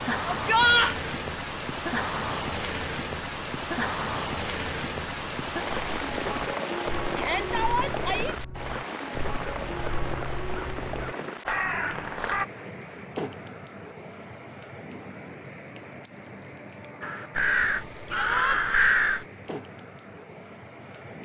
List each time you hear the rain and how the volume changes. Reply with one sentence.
You can hear the rain from 0.0 to 21.2 s, getting quieter.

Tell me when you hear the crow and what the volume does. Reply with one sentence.
You can hear the crow from 5.7 to 12.4 s, getting louder; and briefly from 17.0 to 19.2 s.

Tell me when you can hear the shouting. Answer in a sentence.
The shouting can be heard from 0.2 to 0.9 s, from 7.2 to 8.3 s and from 18.1 to 18.6 s.